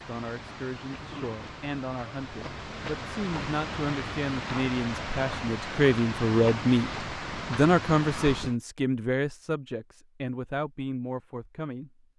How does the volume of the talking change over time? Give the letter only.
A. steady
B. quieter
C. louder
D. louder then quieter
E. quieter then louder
D.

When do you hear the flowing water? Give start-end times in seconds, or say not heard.
0.0-8.6.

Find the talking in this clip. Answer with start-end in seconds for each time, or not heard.
0.0-12.1.